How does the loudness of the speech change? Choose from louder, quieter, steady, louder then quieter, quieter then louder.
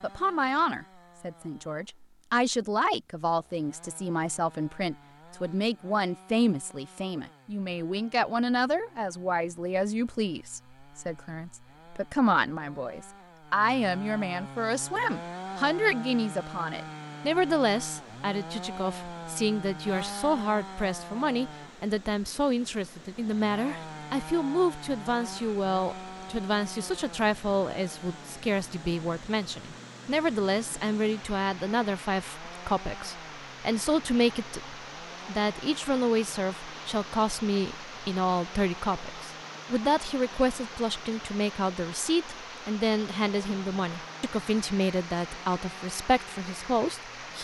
steady.